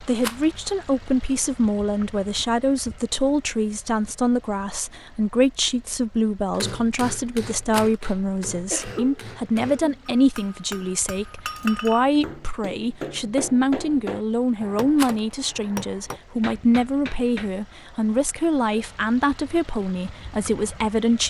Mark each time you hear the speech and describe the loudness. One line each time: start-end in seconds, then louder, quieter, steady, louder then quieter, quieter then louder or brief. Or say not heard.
0.0-21.2 steady.